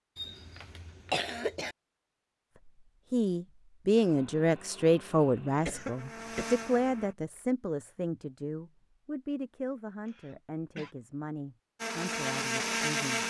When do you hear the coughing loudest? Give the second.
1 s.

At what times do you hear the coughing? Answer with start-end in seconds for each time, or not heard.
0.1-1.8, 5.7-7.0, 10.1-10.9.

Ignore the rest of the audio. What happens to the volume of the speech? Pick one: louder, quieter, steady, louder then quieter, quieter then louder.
quieter.